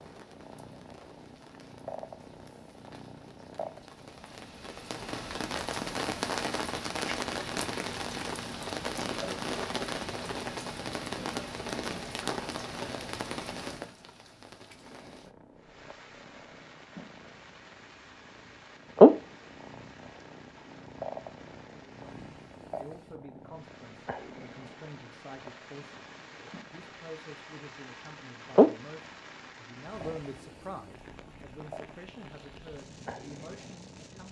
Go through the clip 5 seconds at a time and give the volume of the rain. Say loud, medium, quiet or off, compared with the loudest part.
quiet, loud, loud, quiet, quiet, quiet, quiet.